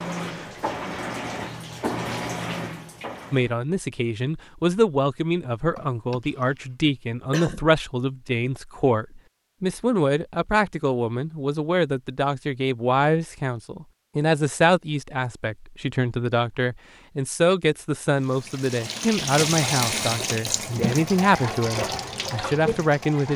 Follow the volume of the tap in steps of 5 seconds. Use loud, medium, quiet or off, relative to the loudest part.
loud, off, off, loud, loud.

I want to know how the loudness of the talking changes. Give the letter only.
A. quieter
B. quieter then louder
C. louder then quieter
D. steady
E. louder
D.